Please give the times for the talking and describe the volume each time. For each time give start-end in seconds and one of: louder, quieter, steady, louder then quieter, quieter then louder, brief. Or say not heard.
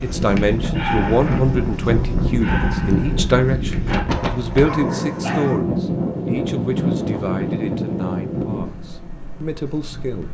0.0-10.2 quieter.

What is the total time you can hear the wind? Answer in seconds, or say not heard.
10 s.